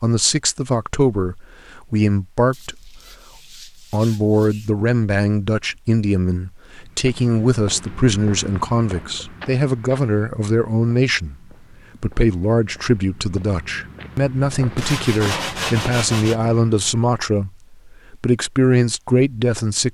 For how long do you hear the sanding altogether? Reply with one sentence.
You can hear the sanding for 4 seconds altogether.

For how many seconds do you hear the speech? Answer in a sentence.
You can hear the speech for 18 seconds altogether.